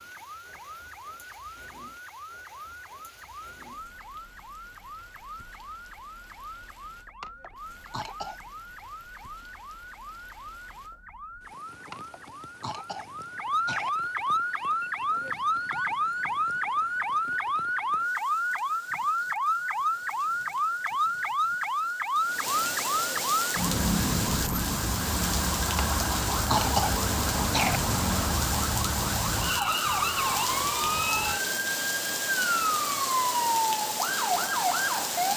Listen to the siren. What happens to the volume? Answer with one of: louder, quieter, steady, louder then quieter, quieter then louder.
louder.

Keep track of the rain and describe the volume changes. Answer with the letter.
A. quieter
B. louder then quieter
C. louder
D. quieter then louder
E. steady
C.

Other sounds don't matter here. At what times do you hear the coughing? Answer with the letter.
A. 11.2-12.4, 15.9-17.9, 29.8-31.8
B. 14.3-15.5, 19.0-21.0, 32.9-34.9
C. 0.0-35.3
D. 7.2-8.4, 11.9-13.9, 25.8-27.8
D.